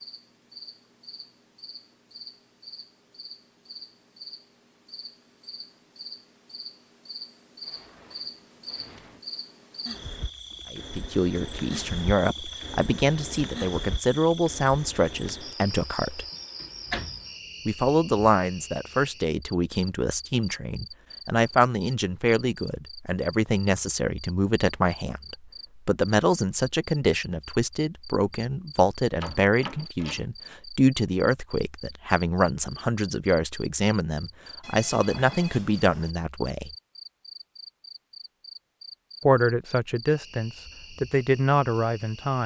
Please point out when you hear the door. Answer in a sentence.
You can hear the door from 7.6 to 9.2 s, from 16.3 to 17.3 s and from 29.2 to 30.2 s.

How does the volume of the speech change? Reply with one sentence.
The loudness of the speech stays about the same.